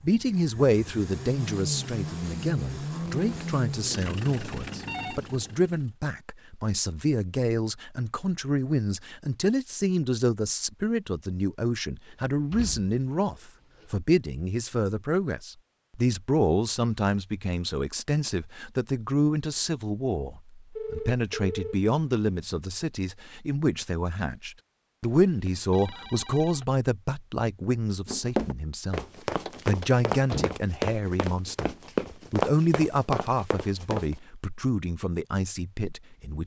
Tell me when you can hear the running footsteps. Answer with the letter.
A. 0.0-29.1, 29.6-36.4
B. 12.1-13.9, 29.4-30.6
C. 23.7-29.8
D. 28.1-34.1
D.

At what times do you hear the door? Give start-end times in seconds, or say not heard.
12.1-13.9, 29.4-30.6.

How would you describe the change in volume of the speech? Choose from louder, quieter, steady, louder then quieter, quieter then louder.
steady.